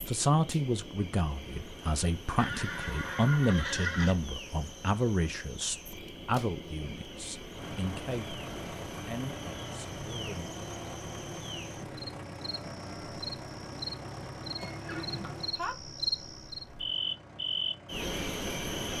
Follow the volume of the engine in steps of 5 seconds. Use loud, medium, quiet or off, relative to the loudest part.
off, loud, loud, medium.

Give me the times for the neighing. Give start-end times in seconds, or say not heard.
2.4-4.2, 14.6-15.8.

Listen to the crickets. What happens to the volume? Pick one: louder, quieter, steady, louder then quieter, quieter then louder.
louder.